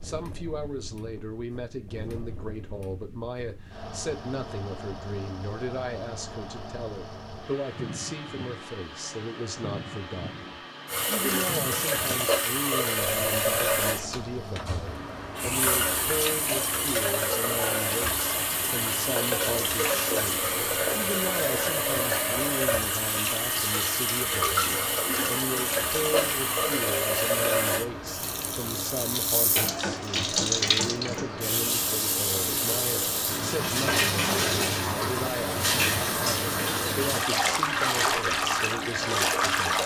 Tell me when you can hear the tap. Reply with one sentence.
You can hear the tap from 10.8 to 39.8 s.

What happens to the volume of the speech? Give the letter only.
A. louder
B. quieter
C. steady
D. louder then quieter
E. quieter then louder
C.